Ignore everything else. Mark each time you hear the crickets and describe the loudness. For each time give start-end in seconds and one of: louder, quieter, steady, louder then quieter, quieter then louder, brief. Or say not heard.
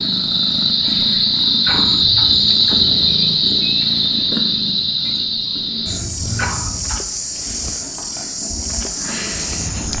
0.0-9.9 quieter.